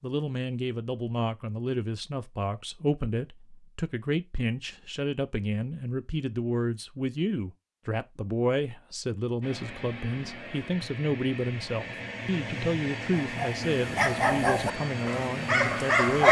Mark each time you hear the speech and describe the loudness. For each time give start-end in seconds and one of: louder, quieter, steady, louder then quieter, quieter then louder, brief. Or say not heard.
0.0-16.2 steady.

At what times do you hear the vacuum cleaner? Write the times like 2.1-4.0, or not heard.
9.4-16.2.